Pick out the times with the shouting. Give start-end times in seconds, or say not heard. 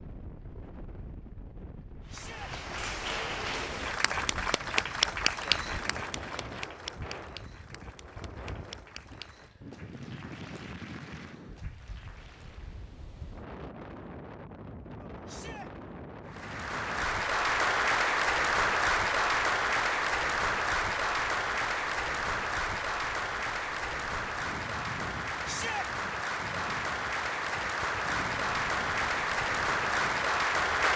2.1-2.5, 15.2-15.7, 25.4-25.9.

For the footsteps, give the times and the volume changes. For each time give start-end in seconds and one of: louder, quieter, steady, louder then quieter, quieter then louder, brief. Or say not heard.
not heard.